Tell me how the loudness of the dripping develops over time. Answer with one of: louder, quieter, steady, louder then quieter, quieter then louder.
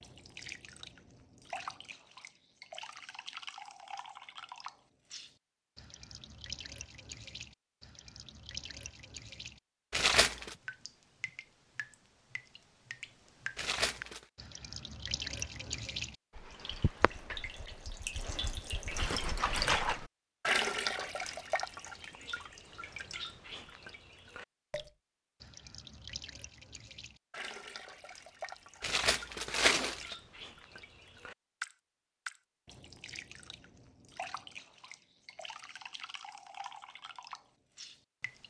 louder then quieter.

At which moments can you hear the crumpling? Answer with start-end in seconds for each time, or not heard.
9.9-10.6, 13.6-14.2, 28.8-30.1.